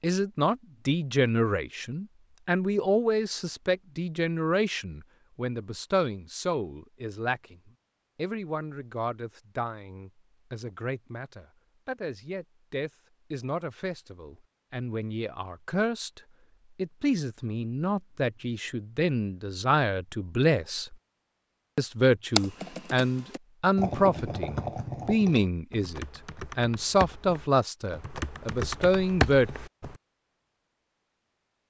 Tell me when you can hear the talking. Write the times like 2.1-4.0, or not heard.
0.0-20.9, 21.8-29.5.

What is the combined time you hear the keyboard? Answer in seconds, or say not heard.
8 s.